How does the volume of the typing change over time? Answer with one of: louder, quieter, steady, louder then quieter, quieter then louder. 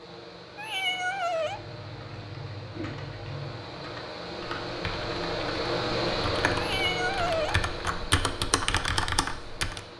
louder.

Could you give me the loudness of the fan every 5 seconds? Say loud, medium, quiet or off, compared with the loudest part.
medium, loud.